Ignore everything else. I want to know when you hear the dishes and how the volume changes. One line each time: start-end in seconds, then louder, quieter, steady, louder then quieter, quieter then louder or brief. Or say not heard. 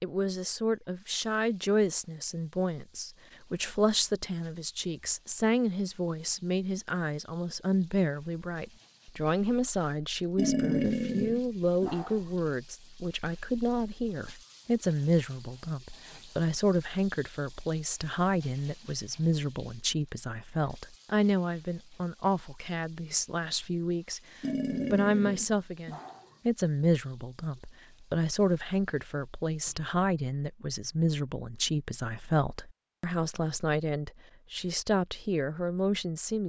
not heard.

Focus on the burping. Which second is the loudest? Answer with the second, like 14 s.
11 s.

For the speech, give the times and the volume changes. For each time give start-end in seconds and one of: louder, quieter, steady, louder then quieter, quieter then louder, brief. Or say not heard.
0.0-36.4 steady.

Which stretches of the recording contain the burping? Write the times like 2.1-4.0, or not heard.
10.3-12.2, 24.4-26.2.